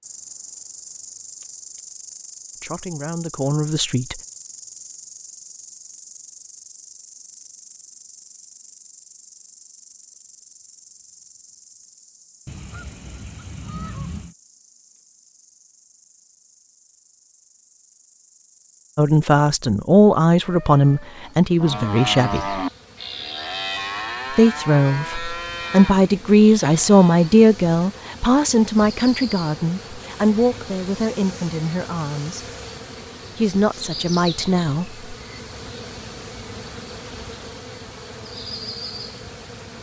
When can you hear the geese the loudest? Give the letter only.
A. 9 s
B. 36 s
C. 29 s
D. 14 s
D.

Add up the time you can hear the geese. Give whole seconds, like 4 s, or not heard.
2 s.